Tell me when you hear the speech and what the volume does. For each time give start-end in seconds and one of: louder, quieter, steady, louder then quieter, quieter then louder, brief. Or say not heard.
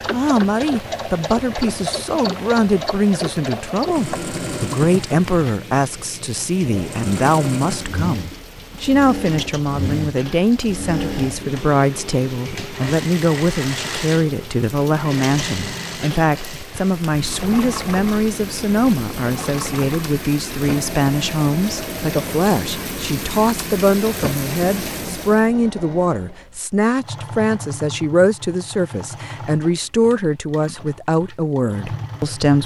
0.1-32.6 steady.